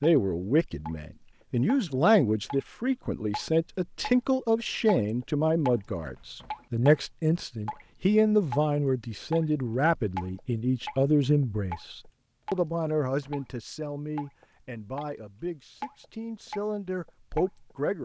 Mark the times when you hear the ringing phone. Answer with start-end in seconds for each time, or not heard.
not heard.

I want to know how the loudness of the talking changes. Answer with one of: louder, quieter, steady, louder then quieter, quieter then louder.
quieter.